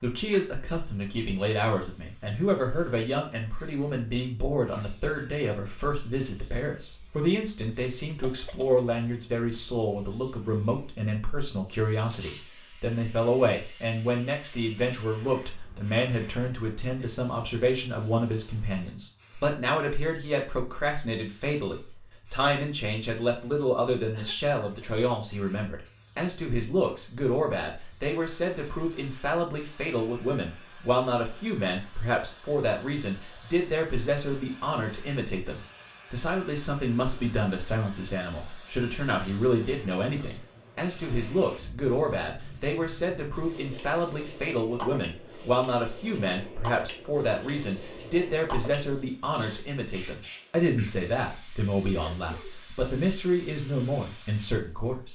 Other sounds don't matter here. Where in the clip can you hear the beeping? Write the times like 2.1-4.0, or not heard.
not heard.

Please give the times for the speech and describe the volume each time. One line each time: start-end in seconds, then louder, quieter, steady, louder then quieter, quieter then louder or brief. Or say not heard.
0.0-55.1 steady.